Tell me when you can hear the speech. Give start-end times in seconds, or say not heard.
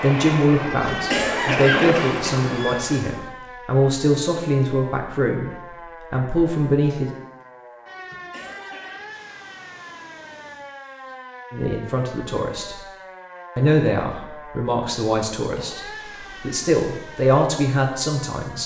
0.0-5.5, 6.1-7.1, 11.5-12.8, 13.6-18.6.